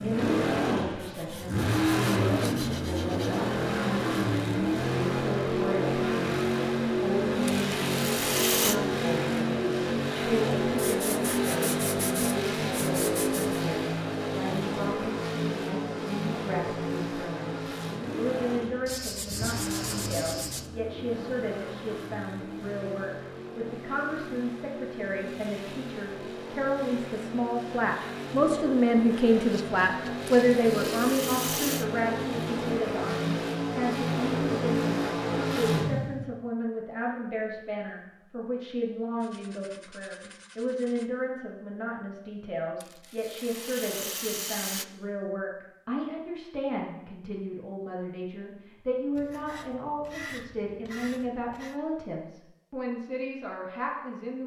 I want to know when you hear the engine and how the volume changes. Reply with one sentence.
You can hear the engine from 0.0 to 36.3 s, getting quieter then louder.